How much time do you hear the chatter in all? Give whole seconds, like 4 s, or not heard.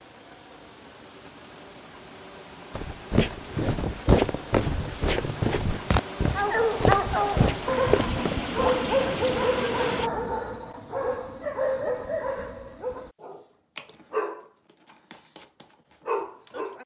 not heard.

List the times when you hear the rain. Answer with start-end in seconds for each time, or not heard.
0.0-10.1.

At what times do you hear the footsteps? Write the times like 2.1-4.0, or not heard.
2.7-8.4.